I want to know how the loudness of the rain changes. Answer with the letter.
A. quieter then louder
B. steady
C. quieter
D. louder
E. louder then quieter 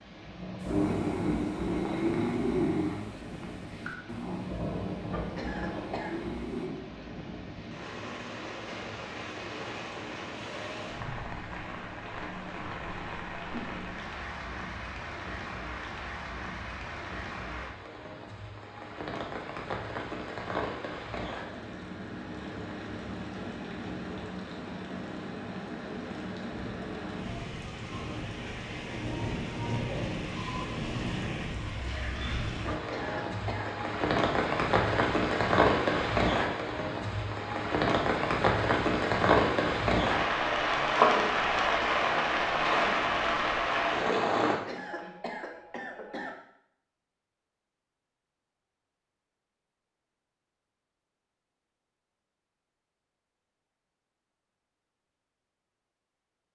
D.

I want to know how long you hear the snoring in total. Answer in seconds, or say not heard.
6 s.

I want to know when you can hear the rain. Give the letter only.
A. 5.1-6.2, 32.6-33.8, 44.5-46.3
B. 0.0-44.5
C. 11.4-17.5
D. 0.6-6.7
B.